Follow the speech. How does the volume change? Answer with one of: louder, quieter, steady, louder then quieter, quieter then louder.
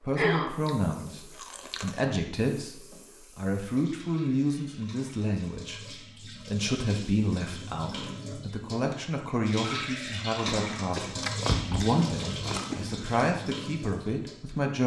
steady.